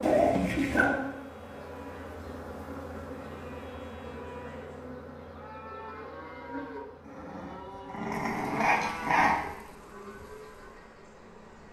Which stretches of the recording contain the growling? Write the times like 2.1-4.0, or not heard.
0.0-1.0, 7.0-9.3.